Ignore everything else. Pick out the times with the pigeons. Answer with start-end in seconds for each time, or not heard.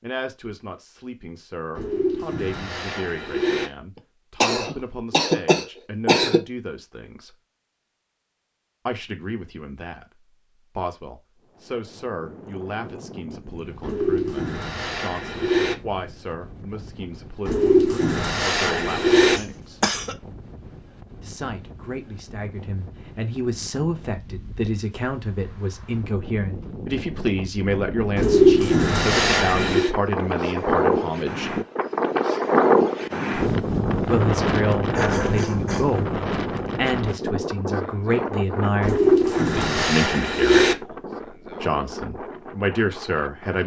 1.8-3.7, 13.8-15.8, 17.4-19.4, 28.1-29.9, 38.8-40.8.